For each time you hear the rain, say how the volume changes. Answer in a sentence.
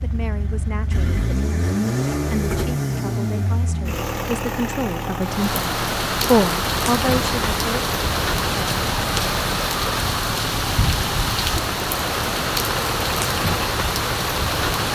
The rain can be heard from 5.2 to 14.9 s, at a steady volume.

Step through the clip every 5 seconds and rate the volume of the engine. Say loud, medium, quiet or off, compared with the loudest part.
loud, medium, medium.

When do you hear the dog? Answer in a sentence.
You can't hear the dog here.